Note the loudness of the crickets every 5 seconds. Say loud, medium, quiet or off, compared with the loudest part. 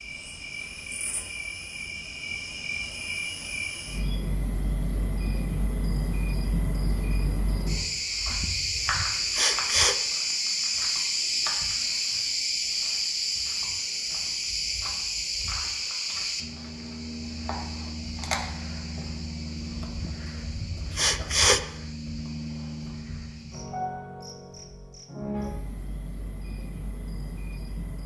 medium, loud, loud, medium, medium, medium.